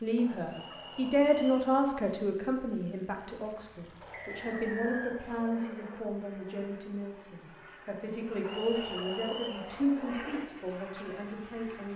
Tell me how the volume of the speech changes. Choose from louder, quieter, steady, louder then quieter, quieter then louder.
quieter.